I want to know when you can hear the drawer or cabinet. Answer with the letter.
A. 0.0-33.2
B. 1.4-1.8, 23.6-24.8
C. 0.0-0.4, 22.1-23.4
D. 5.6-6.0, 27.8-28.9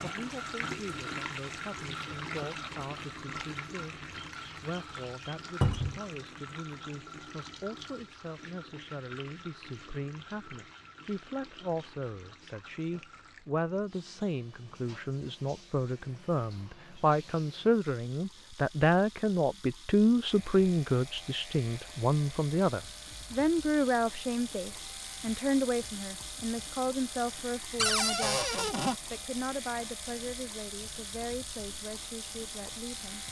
D.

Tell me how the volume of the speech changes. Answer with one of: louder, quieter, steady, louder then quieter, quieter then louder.
louder then quieter.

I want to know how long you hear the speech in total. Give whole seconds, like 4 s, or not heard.
33 s.